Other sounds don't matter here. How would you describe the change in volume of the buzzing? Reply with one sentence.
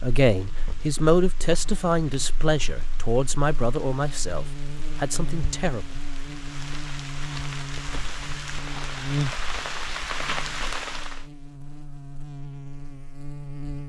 The volume of the buzzing goes up, then down.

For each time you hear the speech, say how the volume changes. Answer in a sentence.
You can hear the speech from 0.0 to 5.8 s, getting quieter.